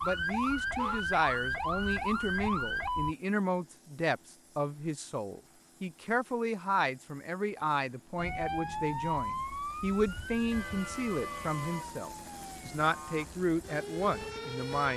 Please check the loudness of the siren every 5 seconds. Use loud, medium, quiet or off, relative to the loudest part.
loud, loud, medium.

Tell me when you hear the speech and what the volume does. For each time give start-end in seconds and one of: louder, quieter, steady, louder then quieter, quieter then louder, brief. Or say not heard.
0.0-14.9 steady.